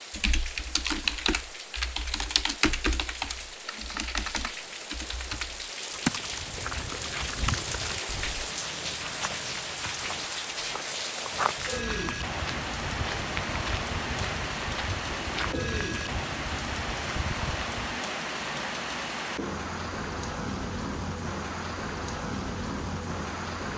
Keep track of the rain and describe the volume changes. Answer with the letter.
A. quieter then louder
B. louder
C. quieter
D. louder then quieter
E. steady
B.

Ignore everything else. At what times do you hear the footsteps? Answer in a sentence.
The footsteps can be heard from 6.2 to 18.0 s.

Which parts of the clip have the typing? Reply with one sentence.
The typing can be heard from 0.1 to 8.5 s.